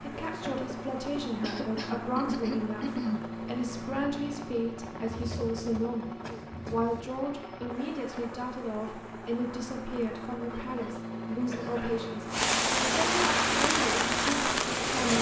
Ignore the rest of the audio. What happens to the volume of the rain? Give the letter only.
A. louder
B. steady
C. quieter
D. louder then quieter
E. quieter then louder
A.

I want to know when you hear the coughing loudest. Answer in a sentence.
The volume of the coughing peaks at 3 seconds.